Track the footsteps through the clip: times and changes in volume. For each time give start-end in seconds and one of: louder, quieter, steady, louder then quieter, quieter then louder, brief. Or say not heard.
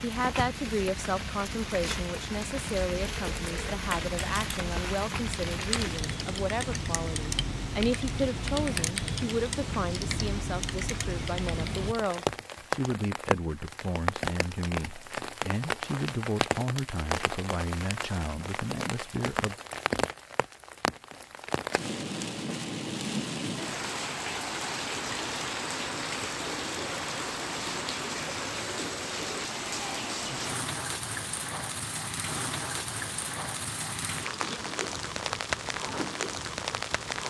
not heard.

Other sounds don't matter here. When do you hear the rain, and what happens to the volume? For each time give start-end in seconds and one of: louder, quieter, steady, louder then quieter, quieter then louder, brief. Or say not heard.
0.0-37.2 steady.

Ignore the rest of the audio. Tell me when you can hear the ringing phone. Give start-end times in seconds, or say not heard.
not heard.